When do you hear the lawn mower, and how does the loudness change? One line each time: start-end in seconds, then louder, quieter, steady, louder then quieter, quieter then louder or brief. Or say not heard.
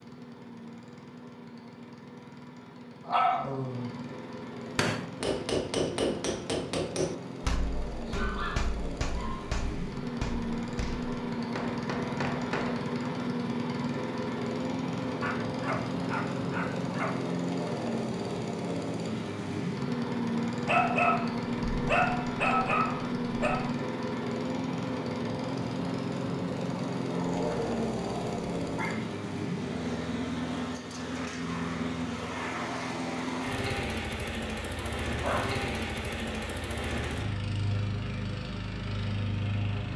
0.0-39.9 louder.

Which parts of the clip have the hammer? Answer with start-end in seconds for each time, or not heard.
4.7-12.9.